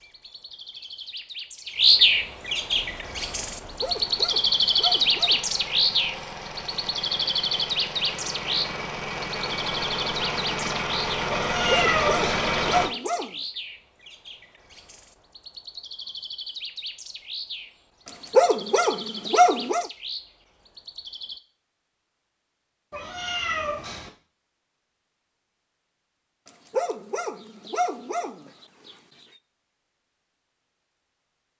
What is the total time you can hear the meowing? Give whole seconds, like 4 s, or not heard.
2 s.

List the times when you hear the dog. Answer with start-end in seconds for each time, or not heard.
3.8-5.4, 11.7-13.3, 18.1-19.9, 26.4-28.9.